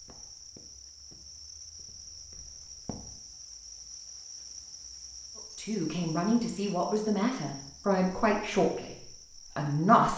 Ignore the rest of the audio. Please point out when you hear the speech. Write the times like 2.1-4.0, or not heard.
5.5-10.1.